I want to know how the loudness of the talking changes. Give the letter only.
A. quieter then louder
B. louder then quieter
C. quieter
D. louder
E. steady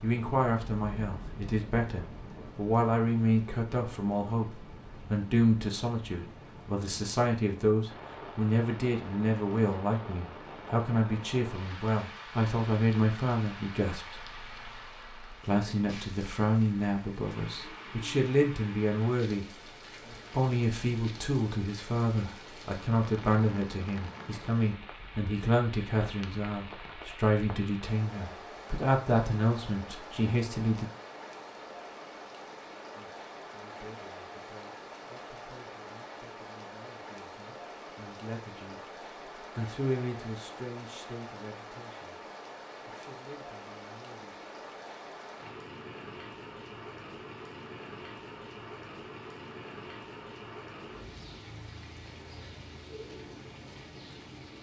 C.